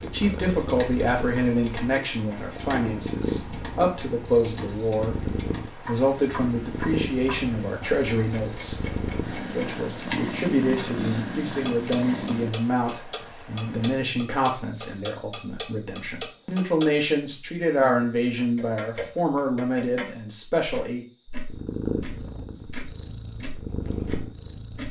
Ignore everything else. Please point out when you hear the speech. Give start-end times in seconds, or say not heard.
0.0-21.1.